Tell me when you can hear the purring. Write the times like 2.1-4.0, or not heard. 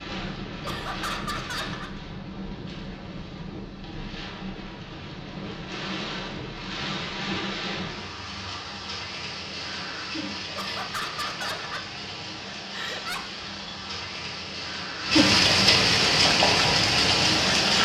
not heard.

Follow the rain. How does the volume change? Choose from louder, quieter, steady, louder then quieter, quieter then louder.
louder.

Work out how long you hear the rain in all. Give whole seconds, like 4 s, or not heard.
18 s.